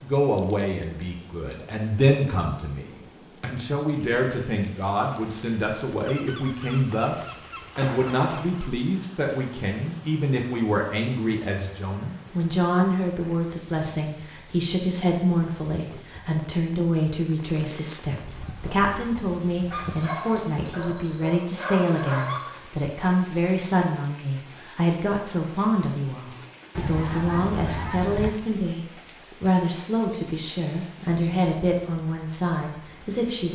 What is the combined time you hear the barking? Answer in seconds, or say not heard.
3 s.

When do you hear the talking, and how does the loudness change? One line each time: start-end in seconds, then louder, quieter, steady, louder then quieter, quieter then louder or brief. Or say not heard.
0.0-33.5 steady.